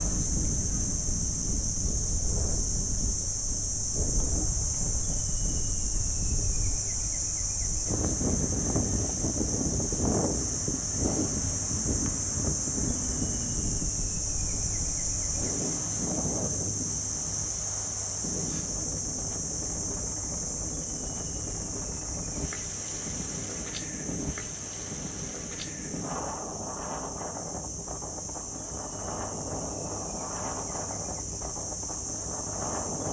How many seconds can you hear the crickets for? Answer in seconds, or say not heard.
33 s.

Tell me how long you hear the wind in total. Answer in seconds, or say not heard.
33 s.